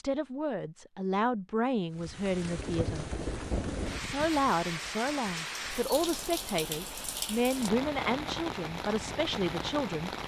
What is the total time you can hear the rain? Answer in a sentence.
The rain can be heard for 8 seconds in total.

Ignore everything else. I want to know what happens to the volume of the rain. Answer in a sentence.
The loudness of the rain stays about the same.